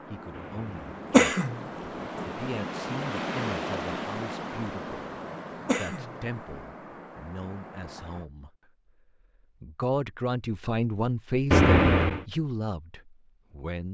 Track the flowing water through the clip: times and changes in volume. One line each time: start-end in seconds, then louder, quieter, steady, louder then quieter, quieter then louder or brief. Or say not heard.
0.0-8.3 louder then quieter.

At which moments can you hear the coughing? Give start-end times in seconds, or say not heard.
1.1-1.6, 5.7-6.1, 11.5-12.2.